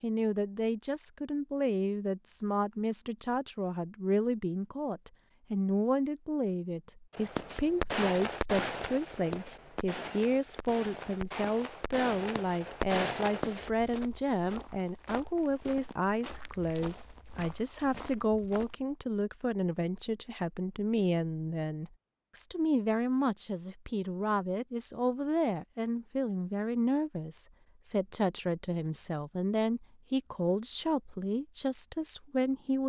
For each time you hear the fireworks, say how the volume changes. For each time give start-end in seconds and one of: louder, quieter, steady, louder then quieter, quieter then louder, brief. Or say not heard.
7.1-13.7 quieter then louder.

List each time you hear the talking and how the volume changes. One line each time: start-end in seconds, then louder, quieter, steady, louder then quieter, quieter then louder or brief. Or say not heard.
0.0-32.8 steady.